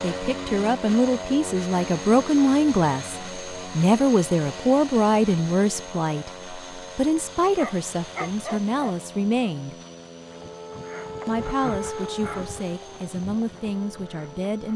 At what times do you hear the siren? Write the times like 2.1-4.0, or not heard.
10.1-14.7.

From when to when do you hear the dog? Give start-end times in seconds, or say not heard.
7.5-9.5.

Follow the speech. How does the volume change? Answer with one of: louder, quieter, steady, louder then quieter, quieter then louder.
quieter.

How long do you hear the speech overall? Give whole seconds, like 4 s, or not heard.
13 s.